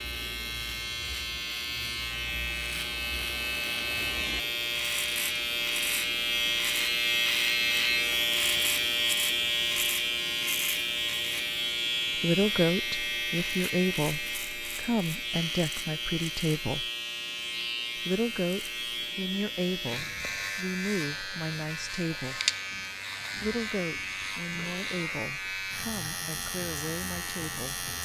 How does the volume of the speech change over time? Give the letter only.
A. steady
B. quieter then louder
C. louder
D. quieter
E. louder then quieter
D.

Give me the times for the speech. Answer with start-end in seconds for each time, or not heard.
12.2-16.9, 17.9-22.4, 23.4-27.9.